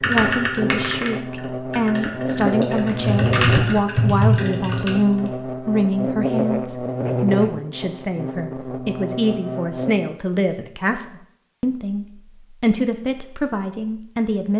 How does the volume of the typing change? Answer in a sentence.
The volume of the typing goes down, then up.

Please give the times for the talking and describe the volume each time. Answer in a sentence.
You can hear the talking from 0.0 to 14.5 s, at a steady volume.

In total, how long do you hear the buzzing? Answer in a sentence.
The buzzing can be heard for 10 seconds in total.